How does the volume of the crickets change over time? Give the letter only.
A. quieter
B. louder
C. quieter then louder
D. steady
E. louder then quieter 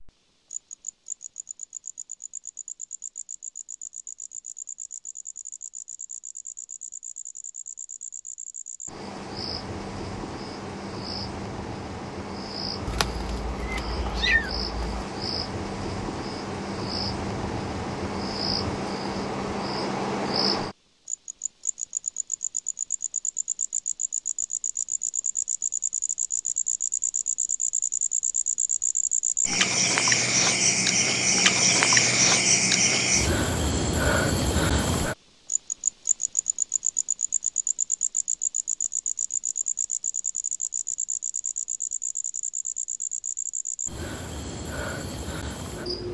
E.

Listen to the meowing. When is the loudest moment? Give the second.
14 s.